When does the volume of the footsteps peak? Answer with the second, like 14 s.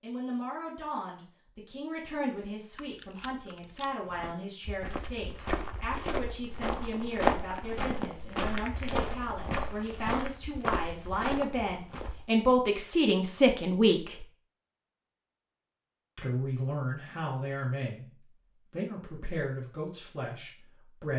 7 s.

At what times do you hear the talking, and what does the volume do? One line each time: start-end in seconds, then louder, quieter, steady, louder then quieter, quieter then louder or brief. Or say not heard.
0.0-14.2 louder
16.1-21.1 quieter.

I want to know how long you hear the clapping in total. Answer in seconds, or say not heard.
not heard.